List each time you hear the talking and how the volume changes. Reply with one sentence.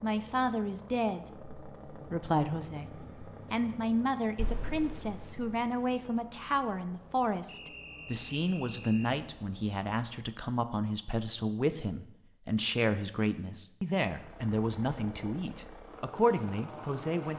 The talking can be heard from 0.0 to 17.3 s, at a steady volume.